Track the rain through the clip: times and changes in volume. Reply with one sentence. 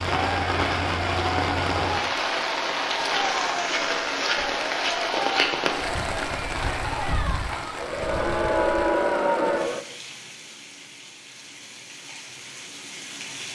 The rain can be heard from 0.0 to 13.4 s, getting quieter.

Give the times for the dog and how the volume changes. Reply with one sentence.
The dog can't be heard in this clip.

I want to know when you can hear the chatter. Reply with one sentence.
You can hear the chatter from 0.1 to 9.8 s.